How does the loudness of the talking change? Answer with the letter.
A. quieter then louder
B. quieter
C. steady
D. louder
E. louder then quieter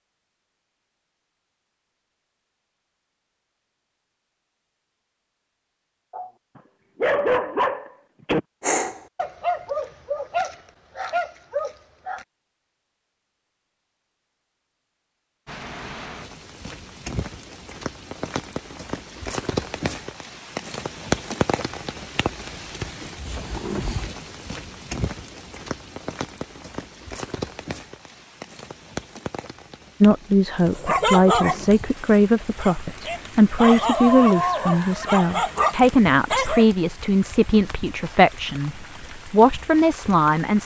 C.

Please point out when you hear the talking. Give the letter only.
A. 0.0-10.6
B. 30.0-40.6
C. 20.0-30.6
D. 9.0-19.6
B.